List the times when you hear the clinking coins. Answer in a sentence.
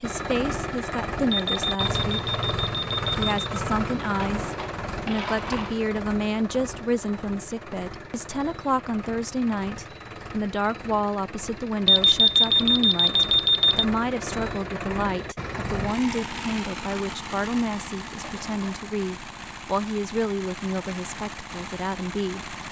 You can hear the clinking coins from 4.2 to 5.8 s and from 18.2 to 18.7 s.